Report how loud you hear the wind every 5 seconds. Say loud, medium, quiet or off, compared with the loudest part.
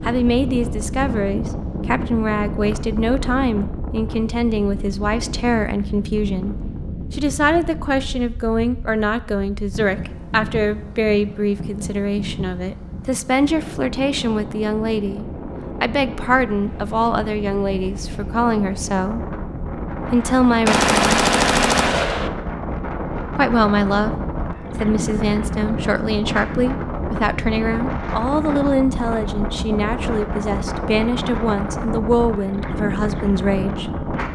loud, medium, medium, medium, loud, loud, loud.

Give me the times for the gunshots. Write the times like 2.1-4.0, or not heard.
20.6-22.3.